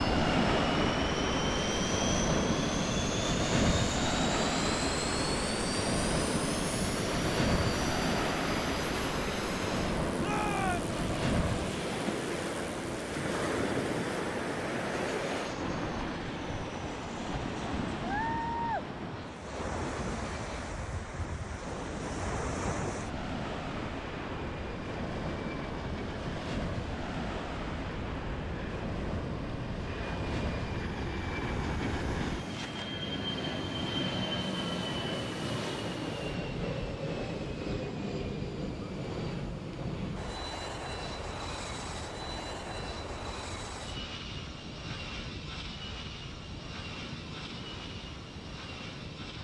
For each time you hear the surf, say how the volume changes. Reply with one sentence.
The surf can be heard from 0.0 to 49.4 s, getting quieter.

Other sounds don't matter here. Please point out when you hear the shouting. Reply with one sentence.
The shouting can be heard from 10.2 to 10.9 s.